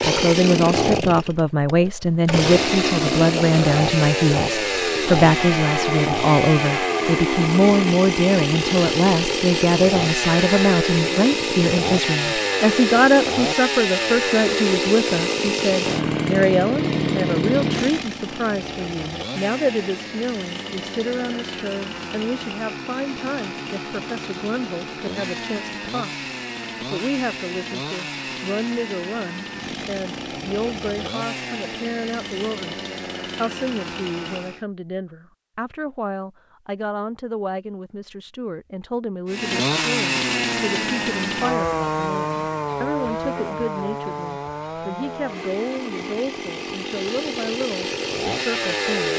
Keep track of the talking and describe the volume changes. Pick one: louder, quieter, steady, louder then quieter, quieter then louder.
quieter.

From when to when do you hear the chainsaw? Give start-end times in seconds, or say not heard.
0.0-34.6, 39.2-49.1.